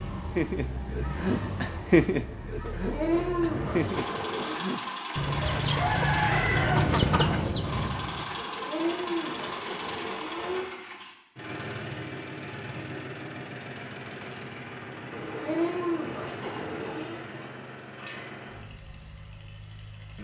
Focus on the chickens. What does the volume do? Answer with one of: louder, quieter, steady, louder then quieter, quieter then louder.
quieter then louder.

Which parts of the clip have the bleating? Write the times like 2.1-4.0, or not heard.
2.6-4.6, 8.3-10.7, 15.1-17.2.